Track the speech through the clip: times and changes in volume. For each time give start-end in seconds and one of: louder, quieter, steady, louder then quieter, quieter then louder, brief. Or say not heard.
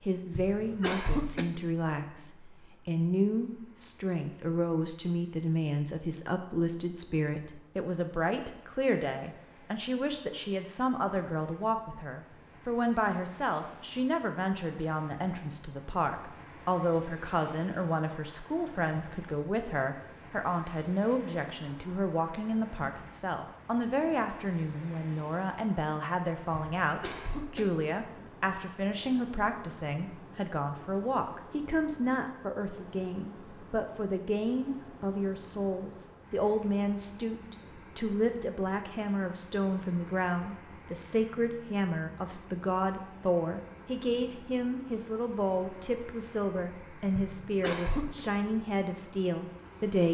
0.1-50.0 steady.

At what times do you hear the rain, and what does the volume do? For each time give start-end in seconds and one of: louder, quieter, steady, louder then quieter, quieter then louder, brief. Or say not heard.
not heard.